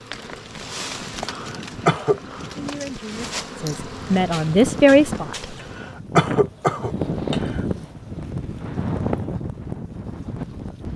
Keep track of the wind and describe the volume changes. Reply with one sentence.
The volume of the wind goes up.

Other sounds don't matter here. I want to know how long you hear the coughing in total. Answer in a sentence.
The coughing can be heard for 3 seconds in total.